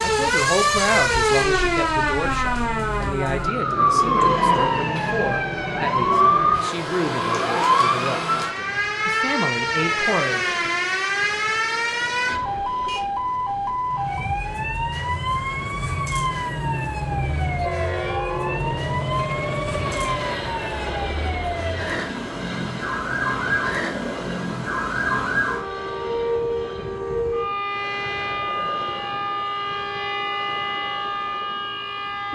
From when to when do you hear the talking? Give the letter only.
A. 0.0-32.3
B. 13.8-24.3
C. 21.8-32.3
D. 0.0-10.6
D.